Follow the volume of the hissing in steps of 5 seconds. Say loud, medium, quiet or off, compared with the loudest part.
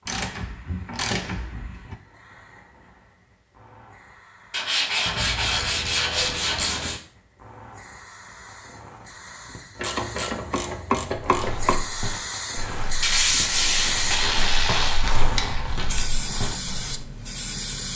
quiet, quiet, loud, loud.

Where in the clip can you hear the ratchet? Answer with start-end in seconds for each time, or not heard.
0.1-1.9, 5.0-7.0, 9.8-11.8, 13.9-15.8.